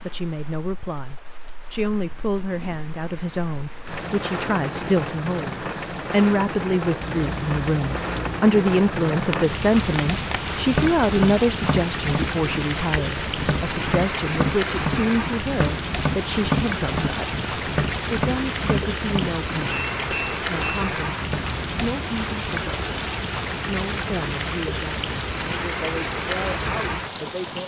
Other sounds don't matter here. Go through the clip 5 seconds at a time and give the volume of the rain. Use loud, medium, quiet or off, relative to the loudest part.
medium, loud, loud, loud, loud, loud.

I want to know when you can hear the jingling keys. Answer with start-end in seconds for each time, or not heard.
7.0-8.4.